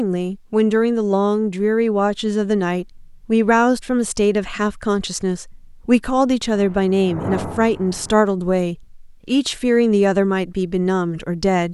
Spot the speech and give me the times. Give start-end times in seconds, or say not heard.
0.0-11.7.